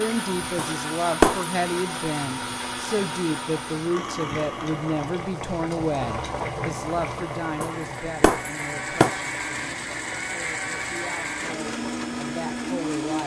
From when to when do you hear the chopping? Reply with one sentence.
You can't hear the chopping here.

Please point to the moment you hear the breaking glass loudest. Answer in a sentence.
The loudest moment of the breaking glass is at 1 second.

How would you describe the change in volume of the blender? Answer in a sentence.
The volume of the blender goes down, then up.